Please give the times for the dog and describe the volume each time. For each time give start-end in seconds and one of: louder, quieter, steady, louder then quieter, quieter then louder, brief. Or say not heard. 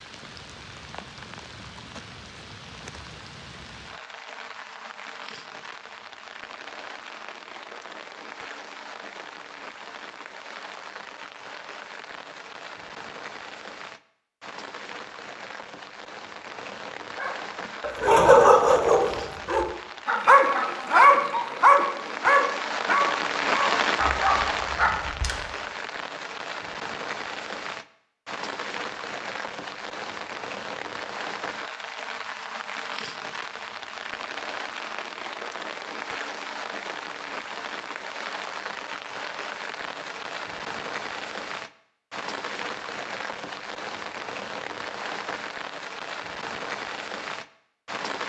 17.1-25.4 quieter.